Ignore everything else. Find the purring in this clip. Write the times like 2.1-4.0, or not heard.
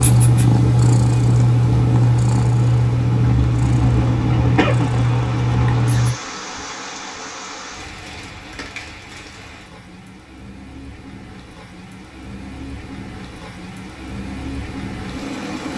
0.0-6.2.